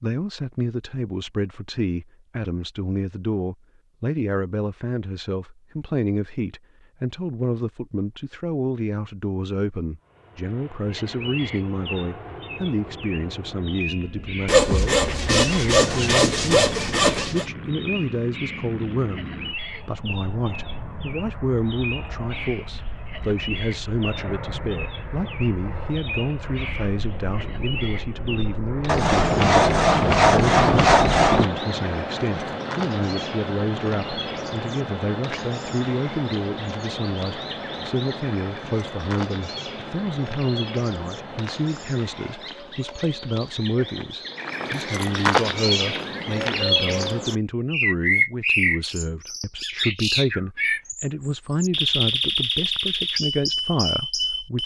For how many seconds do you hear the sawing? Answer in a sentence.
The sawing can be heard for 6 seconds in total.